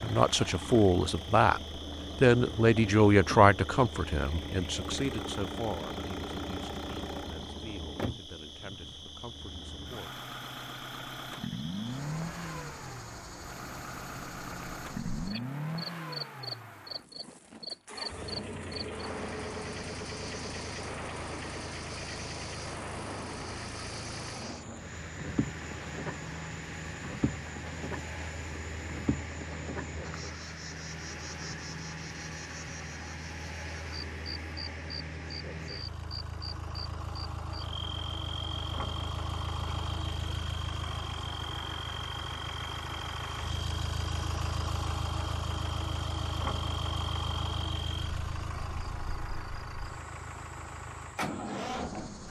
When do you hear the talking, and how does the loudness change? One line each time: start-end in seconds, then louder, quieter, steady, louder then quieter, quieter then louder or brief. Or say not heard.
0.0-10.2 quieter.